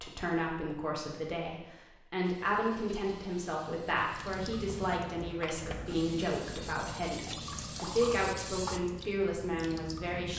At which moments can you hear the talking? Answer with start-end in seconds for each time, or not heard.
0.0-10.3.